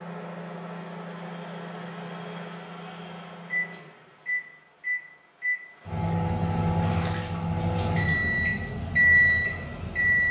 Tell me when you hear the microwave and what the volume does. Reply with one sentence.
The microwave can be heard from 0.0 to 10.2 s, getting louder.